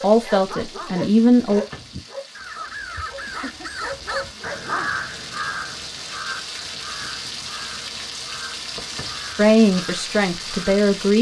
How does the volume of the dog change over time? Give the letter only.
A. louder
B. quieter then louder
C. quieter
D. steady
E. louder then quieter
B.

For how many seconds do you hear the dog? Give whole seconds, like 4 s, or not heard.
5 s.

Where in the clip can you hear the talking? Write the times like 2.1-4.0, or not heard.
0.0-1.6, 9.3-11.1.